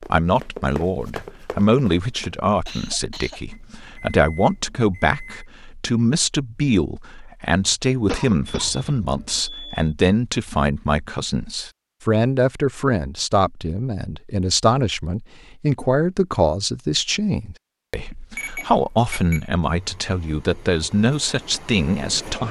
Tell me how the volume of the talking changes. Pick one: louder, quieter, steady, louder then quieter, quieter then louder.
steady.